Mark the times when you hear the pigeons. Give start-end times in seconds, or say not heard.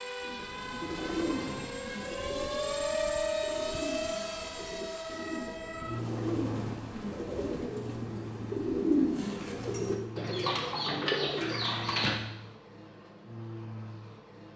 0.2-12.2.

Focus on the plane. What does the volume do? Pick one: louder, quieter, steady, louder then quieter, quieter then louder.
quieter.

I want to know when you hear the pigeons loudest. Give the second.
9 s.